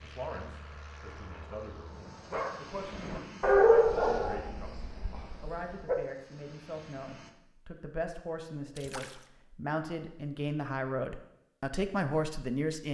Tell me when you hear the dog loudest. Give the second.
4 s.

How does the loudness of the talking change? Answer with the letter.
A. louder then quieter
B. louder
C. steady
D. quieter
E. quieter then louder
B.